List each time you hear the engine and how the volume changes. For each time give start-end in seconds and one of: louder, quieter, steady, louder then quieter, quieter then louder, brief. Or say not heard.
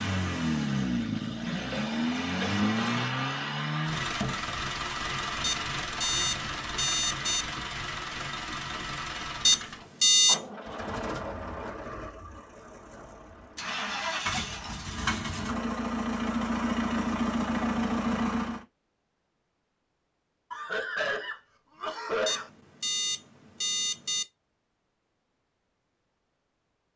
0.0-18.6 quieter then louder.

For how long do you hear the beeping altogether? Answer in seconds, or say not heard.
5 s.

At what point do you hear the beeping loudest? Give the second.
10 s.